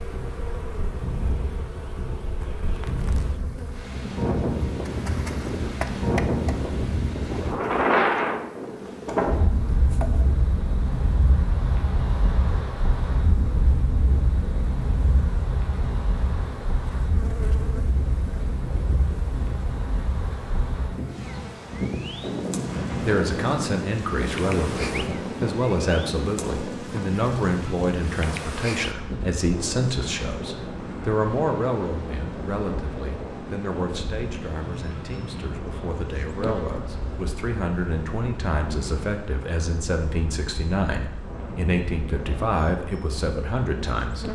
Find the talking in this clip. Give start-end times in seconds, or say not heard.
23.0-44.2.